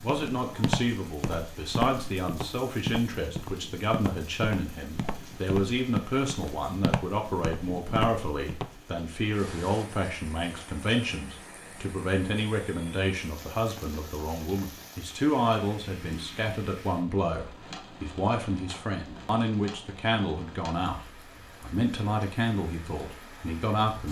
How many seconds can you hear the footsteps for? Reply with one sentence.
You can hear the footsteps for 9 seconds altogether.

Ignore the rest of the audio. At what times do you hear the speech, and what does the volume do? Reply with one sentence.
You can hear the speech from 0.0 to 24.0 s, at a steady volume.